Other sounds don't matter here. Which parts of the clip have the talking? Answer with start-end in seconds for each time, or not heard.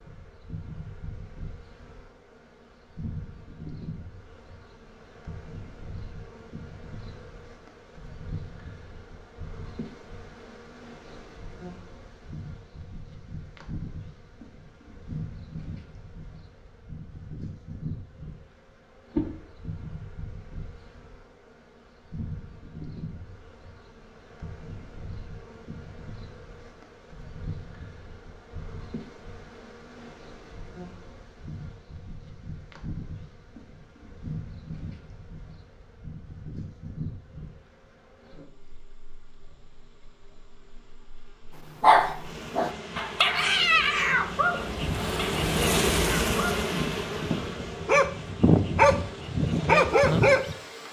not heard.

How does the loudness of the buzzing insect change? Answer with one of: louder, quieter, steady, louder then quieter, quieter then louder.
louder.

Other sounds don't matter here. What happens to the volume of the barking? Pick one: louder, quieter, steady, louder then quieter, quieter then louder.
quieter then louder.